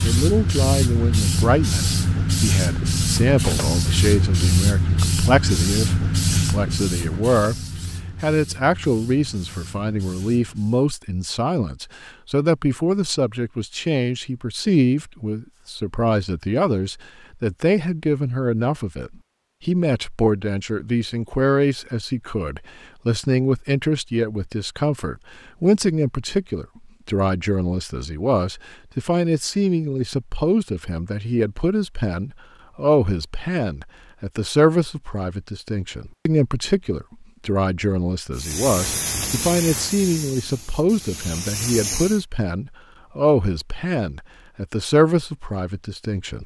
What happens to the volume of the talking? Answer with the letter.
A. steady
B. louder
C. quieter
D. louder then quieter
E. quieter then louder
A.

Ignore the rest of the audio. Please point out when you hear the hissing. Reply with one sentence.
The hissing can be heard from 0.0 to 10.8 s and from 38.4 to 42.2 s.